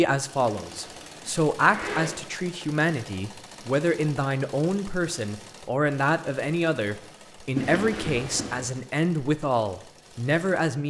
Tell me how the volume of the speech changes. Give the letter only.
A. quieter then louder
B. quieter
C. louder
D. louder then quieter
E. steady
E.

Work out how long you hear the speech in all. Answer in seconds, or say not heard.
11 s.